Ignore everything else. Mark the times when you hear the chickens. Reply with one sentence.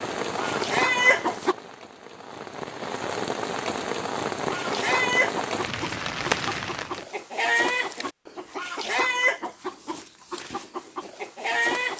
The chickens can be heard from 0.2 to 1.6 s and from 4.5 to 11.9 s.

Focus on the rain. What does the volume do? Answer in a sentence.
The volume of the rain goes down, then up.